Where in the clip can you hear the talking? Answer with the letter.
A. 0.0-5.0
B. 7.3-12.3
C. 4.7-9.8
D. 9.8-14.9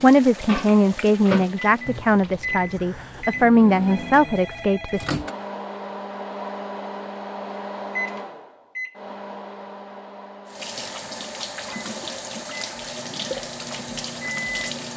A.